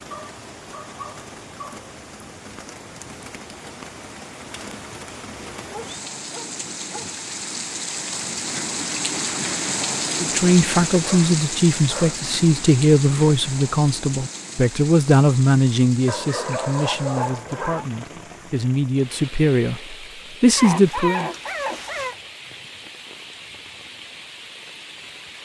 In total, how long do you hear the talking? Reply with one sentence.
You can hear the talking for 11 seconds altogether.